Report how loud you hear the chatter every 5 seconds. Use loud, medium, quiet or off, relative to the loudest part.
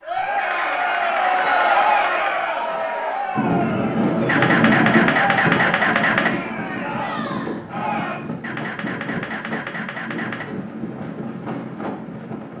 loud, medium, off.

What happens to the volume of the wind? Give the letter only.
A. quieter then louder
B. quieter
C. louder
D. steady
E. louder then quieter
B.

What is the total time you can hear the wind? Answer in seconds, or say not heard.
9 s.